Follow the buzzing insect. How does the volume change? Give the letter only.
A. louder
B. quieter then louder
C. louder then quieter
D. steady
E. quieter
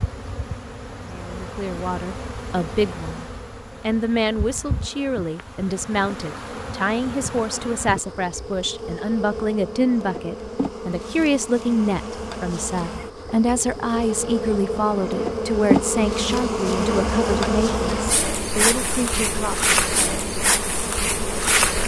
A.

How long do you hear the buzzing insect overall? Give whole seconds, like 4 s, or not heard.
22 s.